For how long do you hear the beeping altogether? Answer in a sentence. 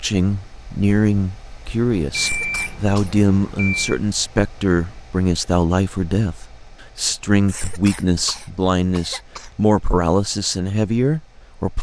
The beeping can be heard for 2 seconds in total.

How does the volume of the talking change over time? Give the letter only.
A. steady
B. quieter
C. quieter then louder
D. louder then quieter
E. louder
A.